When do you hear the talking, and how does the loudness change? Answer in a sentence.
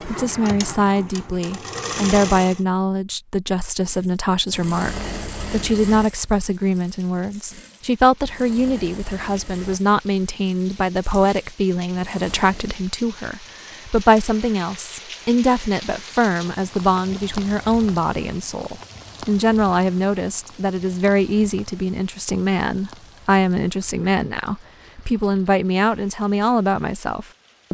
The talking can be heard from 0.1 to 27.6 s, at a steady volume.